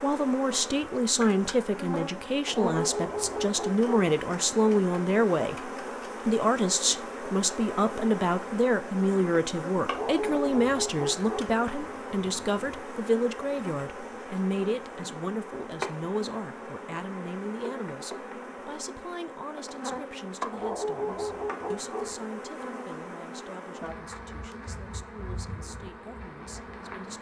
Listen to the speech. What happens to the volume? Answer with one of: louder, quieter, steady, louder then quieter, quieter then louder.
quieter.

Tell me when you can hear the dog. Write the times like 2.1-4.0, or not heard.
2.5-4.1, 9.8-11.5, 20.5-22.1.